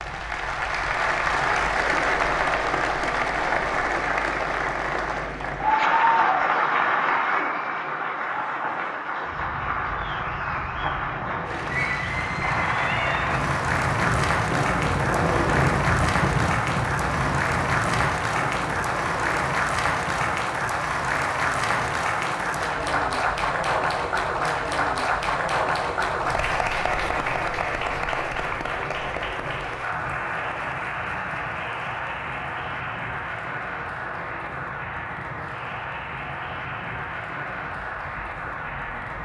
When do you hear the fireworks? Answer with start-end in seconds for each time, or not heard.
not heard.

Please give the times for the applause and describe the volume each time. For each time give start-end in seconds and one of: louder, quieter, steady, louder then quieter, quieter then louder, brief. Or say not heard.
0.0-39.1 quieter.